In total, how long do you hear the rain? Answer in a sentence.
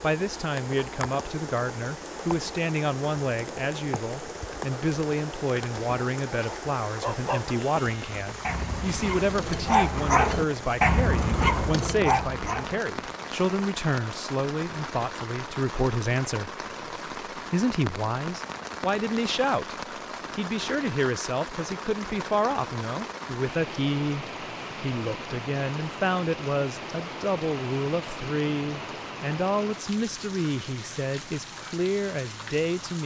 You can hear the rain for 33 seconds altogether.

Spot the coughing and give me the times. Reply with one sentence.
The coughing can't be heard in this clip.